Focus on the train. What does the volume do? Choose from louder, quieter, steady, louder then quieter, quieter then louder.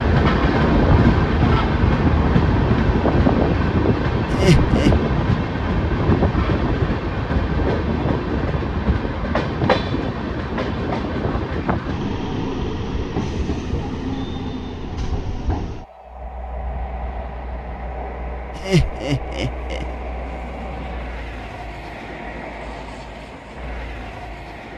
quieter.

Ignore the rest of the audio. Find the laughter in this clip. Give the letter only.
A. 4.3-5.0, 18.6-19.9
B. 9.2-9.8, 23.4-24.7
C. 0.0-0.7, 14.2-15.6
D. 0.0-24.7
A.